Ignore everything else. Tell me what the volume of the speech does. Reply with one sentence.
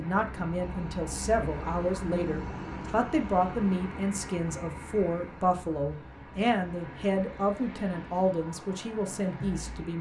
The volume of the speech stays about the same.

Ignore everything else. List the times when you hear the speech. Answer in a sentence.
You can hear the speech from 0.0 to 9.9 s.